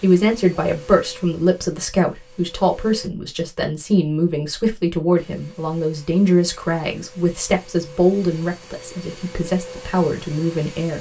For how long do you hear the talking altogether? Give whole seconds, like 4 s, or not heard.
11 s.